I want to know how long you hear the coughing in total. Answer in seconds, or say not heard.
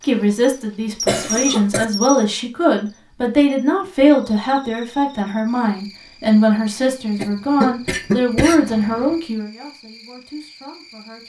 3 s.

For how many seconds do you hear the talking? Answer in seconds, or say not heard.
11 s.